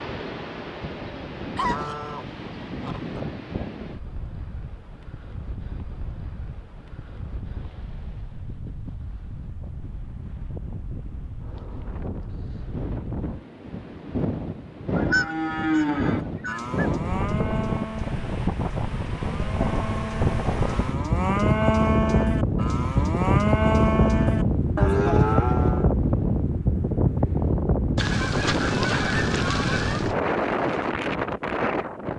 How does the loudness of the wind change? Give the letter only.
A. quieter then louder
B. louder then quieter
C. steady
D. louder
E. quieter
D.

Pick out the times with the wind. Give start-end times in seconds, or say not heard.
0.0-32.1.